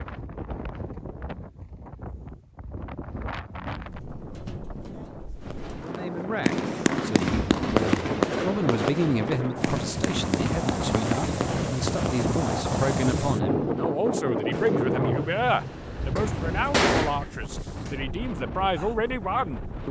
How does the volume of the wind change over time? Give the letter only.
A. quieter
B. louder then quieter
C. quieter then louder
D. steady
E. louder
B.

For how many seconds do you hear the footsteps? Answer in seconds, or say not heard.
not heard.